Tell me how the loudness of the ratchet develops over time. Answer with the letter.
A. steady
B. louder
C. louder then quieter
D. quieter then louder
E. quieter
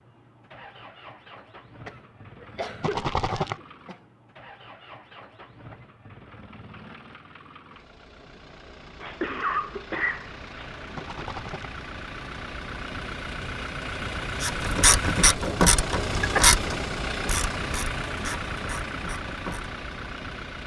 E.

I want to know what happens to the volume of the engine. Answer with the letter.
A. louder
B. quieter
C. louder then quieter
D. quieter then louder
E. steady
A.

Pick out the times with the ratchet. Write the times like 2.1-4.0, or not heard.
14.4-19.7.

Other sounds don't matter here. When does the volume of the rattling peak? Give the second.
3 s.